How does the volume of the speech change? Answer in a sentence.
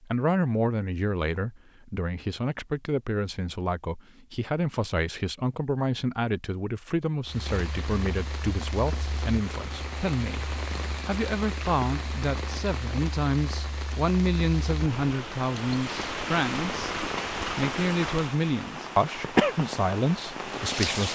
The volume of the speech stays about the same.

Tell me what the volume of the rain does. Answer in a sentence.
The loudness of the rain goes up.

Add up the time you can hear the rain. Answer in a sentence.
You can hear the rain for 14 seconds altogether.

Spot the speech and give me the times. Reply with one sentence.
You can hear the speech from 0.0 to 21.0 s.